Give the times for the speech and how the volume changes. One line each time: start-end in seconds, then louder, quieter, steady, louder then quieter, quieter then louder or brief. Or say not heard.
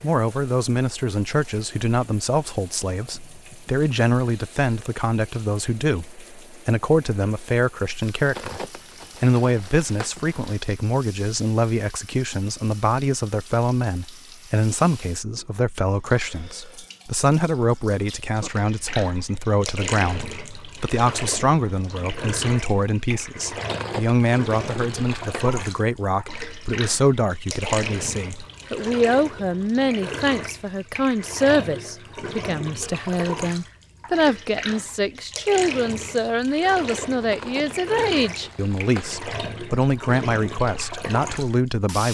0.0-42.0 steady.